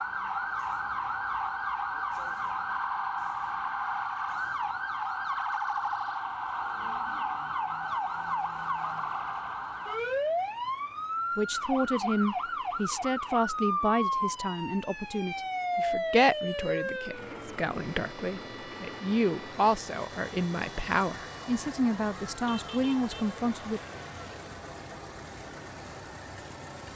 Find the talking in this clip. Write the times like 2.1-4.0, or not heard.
11.3-23.8.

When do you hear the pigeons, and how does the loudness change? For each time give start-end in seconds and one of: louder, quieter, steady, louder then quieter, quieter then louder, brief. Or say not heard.
not heard.